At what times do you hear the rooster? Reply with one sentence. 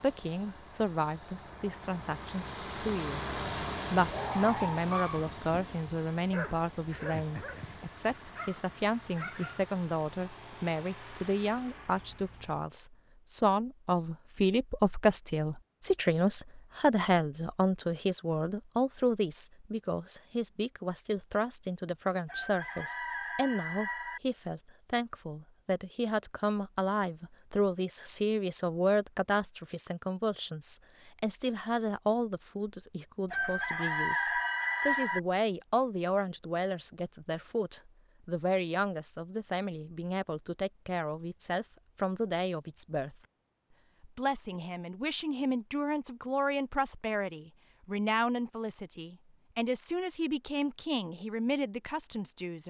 You can hear the rooster from 22.2 to 24.2 s and from 33.2 to 35.2 s.